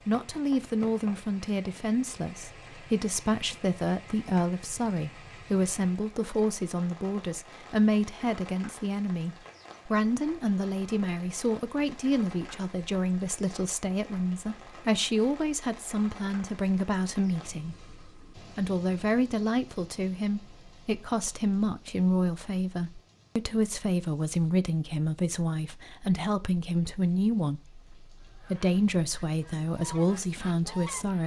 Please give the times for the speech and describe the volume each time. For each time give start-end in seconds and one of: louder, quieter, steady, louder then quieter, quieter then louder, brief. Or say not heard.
0.1-31.2 steady.